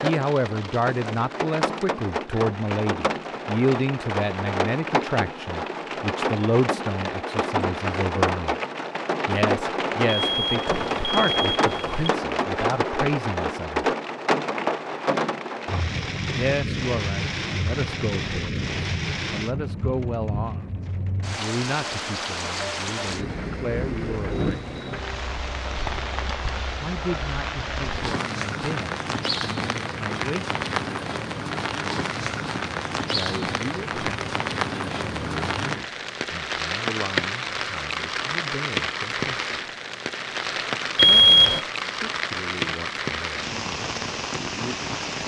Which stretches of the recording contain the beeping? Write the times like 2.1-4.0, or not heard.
10.1-12.1, 41.0-41.6.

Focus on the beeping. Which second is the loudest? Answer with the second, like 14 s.
41 s.